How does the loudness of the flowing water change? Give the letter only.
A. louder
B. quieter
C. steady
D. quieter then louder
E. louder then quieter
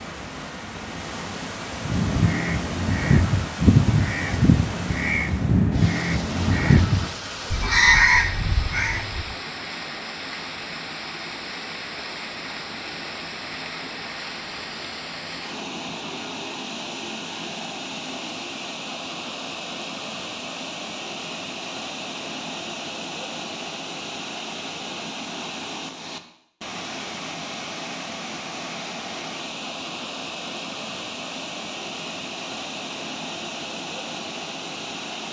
C.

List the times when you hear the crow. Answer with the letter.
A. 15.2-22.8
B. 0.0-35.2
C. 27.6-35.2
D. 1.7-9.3
D.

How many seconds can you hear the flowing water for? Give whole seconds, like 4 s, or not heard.
35 s.